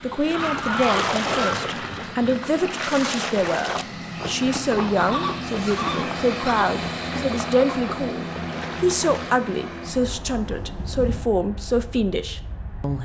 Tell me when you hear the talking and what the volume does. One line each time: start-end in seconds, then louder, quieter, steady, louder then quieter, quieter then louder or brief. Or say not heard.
0.0-13.0 steady.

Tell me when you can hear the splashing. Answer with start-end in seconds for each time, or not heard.
0.2-9.4.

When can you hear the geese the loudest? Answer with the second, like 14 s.
1 s.